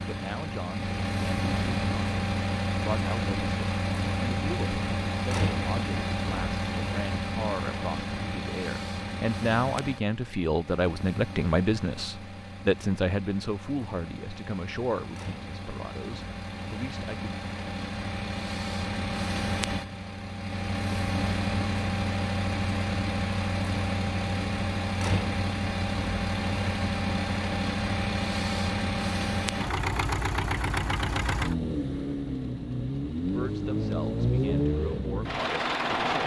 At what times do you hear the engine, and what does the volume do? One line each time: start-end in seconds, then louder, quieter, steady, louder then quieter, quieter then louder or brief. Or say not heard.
0.0-36.2 quieter then louder.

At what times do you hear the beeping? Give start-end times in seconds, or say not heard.
not heard.